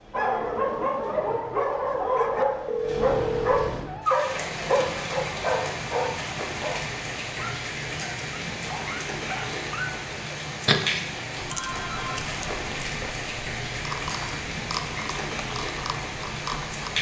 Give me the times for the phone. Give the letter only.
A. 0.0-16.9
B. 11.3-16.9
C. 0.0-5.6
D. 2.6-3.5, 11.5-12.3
D.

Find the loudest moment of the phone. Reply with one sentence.
The volume of the phone peaks at 3 seconds.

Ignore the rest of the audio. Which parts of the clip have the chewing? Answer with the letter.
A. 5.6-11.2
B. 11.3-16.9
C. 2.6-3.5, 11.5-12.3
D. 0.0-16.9
B.